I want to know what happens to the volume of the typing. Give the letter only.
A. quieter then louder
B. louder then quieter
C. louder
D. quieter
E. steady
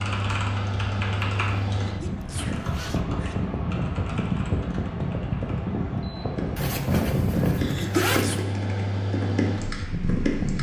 A.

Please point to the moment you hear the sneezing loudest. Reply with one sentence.
The volume of the sneezing peaks at 8 seconds.